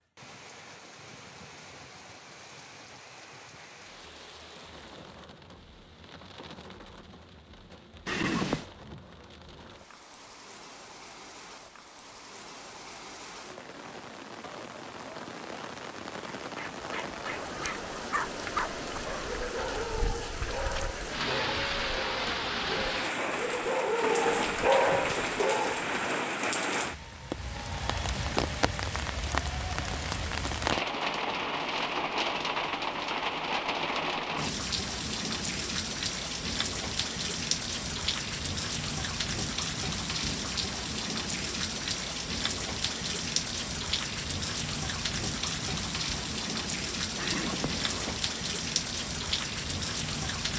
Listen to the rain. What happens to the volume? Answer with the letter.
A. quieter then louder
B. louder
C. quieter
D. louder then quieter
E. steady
B.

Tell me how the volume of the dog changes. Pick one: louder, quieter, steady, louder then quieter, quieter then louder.
louder.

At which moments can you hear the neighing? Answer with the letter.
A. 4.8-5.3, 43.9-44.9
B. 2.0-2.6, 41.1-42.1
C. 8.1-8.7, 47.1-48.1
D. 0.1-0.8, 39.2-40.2
C.